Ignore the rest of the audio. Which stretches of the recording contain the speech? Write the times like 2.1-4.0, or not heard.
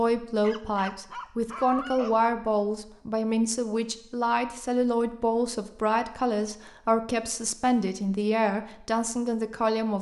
0.0-9.9.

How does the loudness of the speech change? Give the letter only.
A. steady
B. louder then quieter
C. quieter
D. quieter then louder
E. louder
A.